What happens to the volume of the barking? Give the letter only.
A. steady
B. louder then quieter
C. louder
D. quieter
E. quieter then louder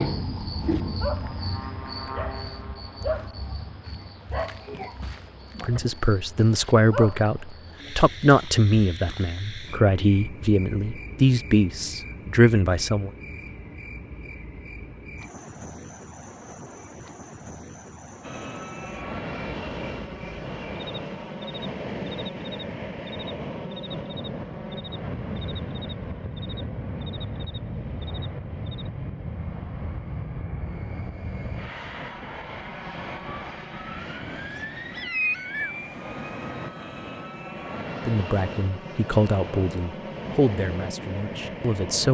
D.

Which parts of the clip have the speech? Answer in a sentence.
You can hear the speech from 5.6 to 13.1 s and from 38.0 to 42.0 s.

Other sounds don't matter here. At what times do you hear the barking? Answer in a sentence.
You can hear the barking from 0.6 to 7.3 s.